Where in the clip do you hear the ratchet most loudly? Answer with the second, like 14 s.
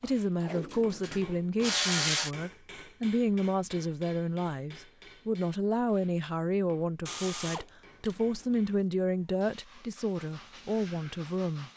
2 s.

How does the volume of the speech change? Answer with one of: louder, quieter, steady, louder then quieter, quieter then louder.
steady.